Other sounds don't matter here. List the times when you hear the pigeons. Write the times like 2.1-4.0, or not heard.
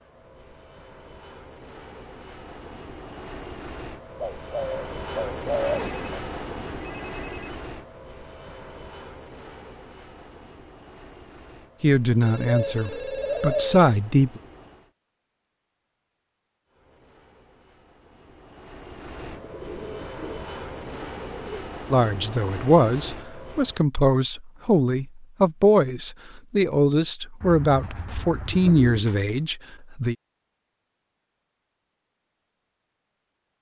4.2-6.2, 12.4-13.7, 19.2-21.7, 27.4-29.1.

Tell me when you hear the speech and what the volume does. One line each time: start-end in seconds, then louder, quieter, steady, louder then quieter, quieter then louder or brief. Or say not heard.
11.8-14.4 brief
21.9-30.1 steady.